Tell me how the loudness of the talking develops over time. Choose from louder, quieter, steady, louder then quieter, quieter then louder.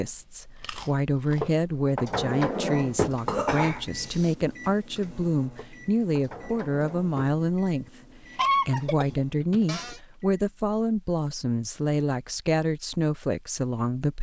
steady.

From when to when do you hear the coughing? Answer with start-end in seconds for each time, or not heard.
3.2-4.3, 8.3-9.9.